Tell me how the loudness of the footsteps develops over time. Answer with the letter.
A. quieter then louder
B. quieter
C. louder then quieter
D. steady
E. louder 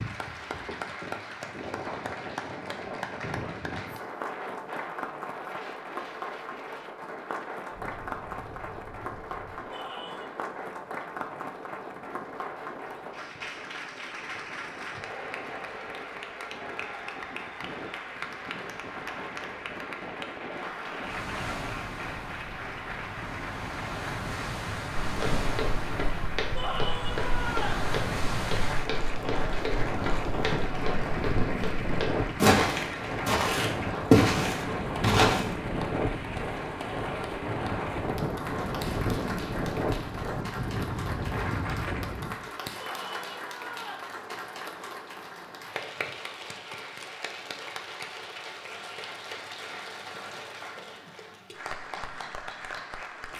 E.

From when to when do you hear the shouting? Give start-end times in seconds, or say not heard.
9.7-10.3, 26.6-27.9, 42.8-44.0.